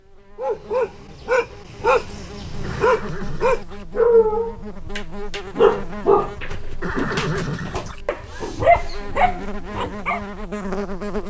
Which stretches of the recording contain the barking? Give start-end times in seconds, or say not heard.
0.3-10.2.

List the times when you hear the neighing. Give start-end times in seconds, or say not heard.
2.6-3.9, 6.8-8.1.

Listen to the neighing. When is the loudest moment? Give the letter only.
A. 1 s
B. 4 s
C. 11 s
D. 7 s
D.